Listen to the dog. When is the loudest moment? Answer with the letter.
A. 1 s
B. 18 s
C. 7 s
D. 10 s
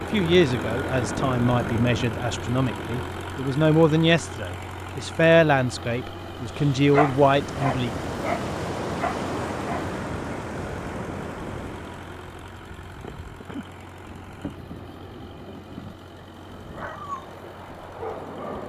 C.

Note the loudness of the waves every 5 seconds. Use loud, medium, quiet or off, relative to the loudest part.
loud, loud, medium, medium.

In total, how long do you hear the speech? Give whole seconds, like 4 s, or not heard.
8 s.